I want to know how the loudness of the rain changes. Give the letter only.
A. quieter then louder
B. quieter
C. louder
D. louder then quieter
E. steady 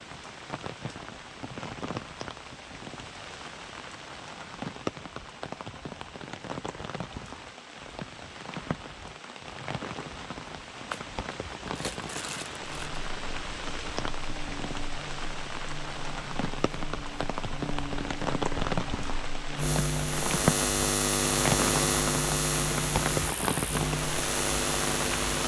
C.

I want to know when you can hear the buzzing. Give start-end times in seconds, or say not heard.
12.6-25.4.